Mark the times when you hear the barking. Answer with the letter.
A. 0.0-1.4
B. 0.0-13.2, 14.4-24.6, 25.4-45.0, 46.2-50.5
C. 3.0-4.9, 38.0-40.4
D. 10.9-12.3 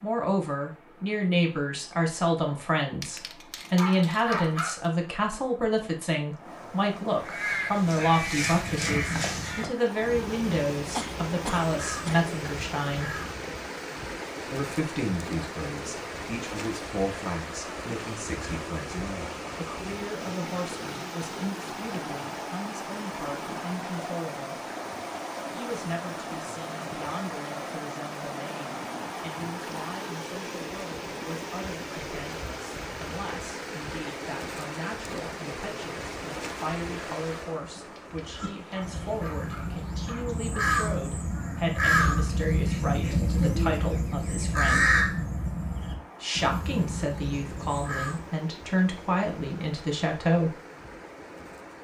C.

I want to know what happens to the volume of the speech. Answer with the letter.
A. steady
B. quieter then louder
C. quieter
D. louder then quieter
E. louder
B.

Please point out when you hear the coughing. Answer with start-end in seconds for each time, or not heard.
10.9-12.3.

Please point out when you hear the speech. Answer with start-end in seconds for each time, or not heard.
0.0-13.2, 14.4-24.6, 25.4-45.0, 46.2-50.5.